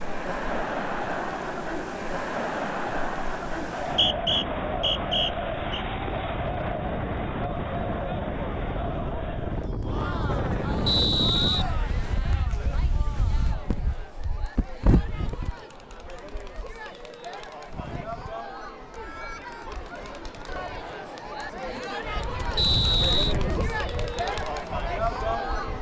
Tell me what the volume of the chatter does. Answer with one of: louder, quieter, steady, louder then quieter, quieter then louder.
quieter then louder.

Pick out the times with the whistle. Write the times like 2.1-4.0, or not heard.
3.8-5.8, 10.8-11.7, 22.6-23.4.